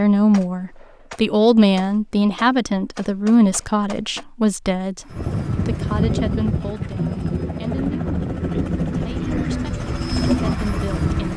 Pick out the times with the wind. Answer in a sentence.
You can hear the wind from 5.1 to 11.3 s.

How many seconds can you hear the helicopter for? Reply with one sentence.
You can hear the helicopter for 6 seconds altogether.